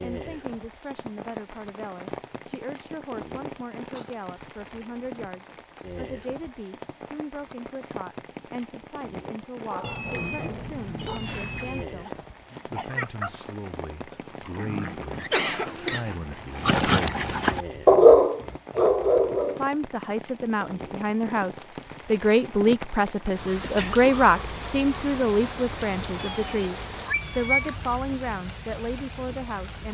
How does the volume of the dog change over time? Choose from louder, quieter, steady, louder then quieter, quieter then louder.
louder.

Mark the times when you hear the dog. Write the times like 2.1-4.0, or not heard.
9.7-19.6.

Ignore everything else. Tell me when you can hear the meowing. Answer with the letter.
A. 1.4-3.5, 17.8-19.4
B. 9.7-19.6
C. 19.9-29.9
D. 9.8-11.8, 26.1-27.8
D.